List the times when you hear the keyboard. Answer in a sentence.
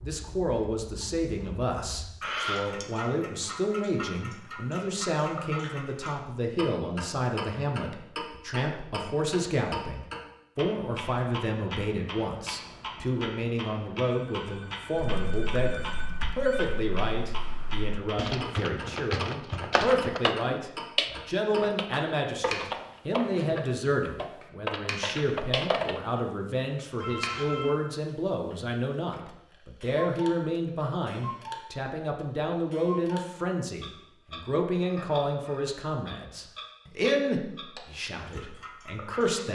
You can hear the keyboard from 14.9 to 26.0 s.